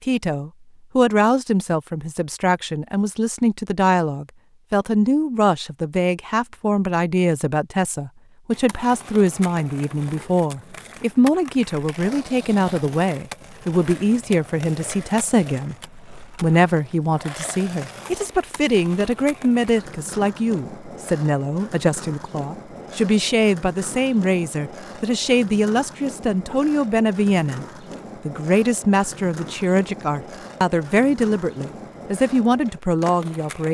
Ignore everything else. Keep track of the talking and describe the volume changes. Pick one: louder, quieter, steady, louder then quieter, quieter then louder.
steady.